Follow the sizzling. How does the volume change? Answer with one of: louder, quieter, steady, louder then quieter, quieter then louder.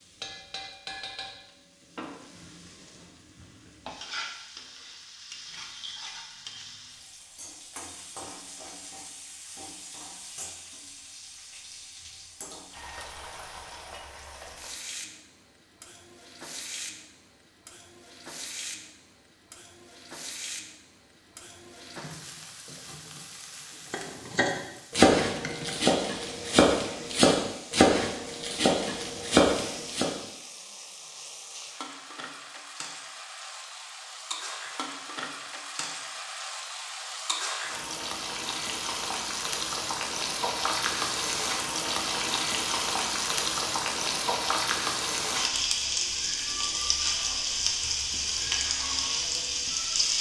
louder.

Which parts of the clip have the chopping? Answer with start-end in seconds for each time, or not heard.
23.9-30.1.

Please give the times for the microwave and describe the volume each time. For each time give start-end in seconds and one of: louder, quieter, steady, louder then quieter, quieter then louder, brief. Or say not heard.
not heard.